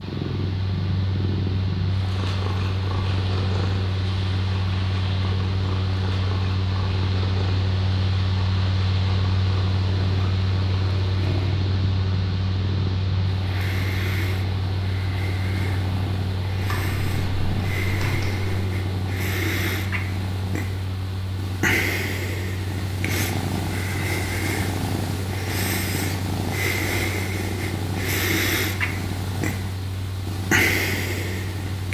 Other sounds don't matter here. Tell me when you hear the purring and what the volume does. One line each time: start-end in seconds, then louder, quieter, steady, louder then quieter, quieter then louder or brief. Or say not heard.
0.0-31.8 louder.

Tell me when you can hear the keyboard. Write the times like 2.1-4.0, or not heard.
16.6-18.6.